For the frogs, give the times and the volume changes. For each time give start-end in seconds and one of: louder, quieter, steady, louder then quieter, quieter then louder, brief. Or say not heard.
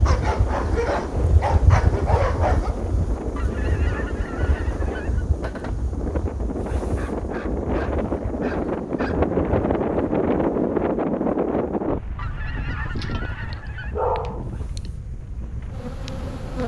not heard.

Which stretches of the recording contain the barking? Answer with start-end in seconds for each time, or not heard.
0.1-2.8, 6.8-9.3, 12.9-14.8.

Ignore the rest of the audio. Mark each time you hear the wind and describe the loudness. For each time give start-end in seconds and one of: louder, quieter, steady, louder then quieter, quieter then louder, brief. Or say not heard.
0.0-16.6 louder then quieter.